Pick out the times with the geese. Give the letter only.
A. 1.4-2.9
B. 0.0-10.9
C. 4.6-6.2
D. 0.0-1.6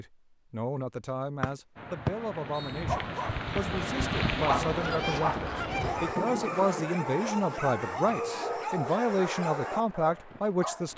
C.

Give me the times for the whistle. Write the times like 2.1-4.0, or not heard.
1.4-2.9.